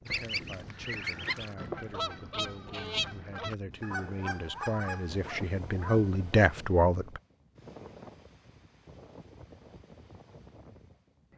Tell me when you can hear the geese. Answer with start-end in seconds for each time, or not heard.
0.1-6.2.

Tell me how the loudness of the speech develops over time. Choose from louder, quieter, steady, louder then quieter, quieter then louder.
louder.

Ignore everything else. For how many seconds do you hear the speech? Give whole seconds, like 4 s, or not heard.
7 s.